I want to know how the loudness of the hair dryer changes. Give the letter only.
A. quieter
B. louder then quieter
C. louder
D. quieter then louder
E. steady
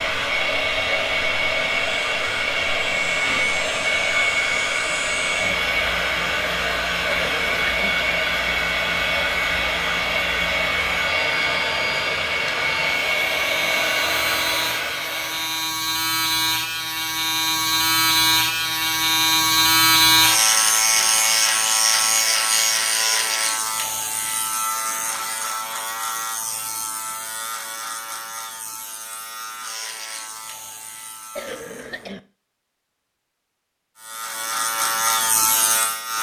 E.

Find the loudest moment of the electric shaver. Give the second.
20 s.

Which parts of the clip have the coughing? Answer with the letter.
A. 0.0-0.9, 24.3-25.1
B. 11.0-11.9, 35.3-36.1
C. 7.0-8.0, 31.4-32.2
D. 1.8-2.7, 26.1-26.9
C.